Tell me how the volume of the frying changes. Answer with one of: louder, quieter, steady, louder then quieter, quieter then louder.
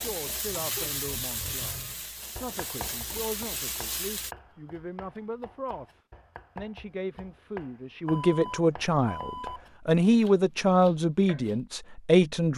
quieter then louder.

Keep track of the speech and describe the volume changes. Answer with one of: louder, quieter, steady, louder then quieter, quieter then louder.
louder.